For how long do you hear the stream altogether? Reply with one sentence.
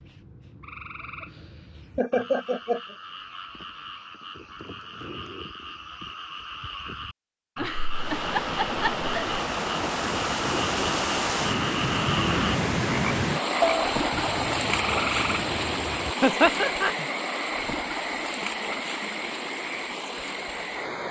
The stream can be heard for 13 seconds in total.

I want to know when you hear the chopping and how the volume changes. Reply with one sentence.
You can't hear the chopping here.